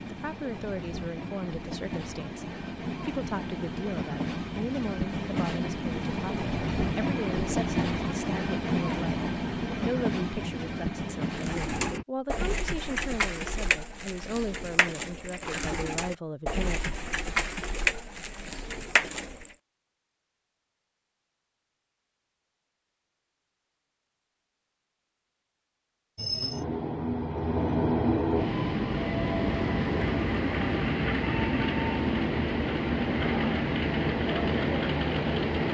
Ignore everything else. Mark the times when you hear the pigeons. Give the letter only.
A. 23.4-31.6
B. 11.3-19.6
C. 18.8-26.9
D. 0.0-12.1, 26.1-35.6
B.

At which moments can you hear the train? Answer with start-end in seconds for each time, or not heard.
0.0-12.1, 26.1-35.6.